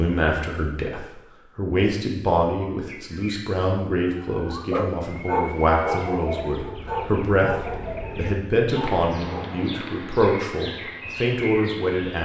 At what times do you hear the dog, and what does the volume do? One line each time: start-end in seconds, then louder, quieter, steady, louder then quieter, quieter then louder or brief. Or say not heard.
4.7-9.7 quieter.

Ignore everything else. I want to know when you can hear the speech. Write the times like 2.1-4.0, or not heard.
0.0-12.2.